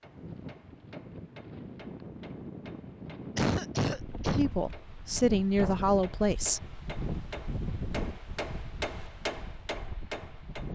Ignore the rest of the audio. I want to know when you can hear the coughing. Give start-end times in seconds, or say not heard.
3.4-4.5.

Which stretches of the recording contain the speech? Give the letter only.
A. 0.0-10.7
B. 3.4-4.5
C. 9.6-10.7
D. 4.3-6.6
D.